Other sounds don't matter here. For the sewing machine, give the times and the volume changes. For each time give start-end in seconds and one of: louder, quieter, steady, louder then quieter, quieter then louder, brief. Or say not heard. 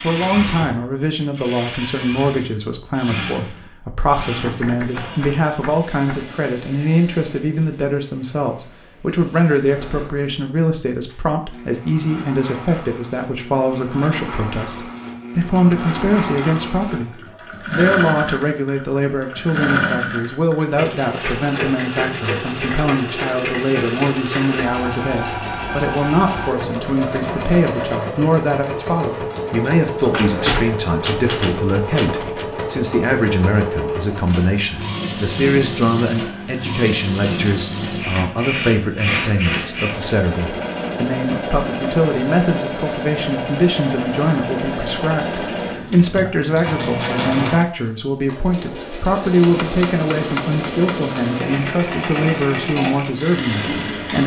0.0-54.2 louder.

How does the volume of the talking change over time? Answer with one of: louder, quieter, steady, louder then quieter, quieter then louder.
steady.